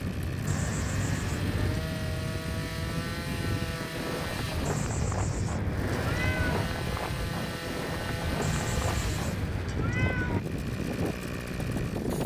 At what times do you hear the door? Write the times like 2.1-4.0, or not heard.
not heard.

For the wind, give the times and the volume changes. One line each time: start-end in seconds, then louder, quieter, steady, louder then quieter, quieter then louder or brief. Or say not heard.
0.0-12.2 steady.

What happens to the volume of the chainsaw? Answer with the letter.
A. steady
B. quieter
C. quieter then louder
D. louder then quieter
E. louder
A.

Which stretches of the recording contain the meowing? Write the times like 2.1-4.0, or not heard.
0.5-1.9, 4.7-6.7, 8.4-10.4.